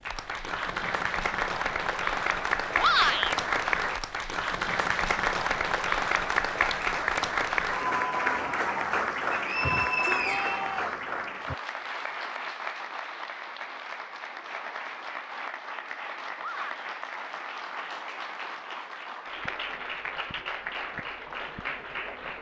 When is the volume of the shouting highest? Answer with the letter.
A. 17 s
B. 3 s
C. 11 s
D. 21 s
B.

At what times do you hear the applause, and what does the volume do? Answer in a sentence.
You can hear the applause from 0.0 to 22.3 s, getting quieter.